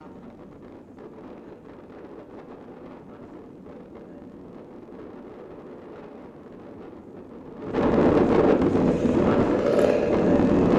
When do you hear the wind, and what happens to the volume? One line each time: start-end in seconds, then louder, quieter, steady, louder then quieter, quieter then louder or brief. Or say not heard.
0.0-10.7 louder.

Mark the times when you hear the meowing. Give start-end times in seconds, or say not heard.
not heard.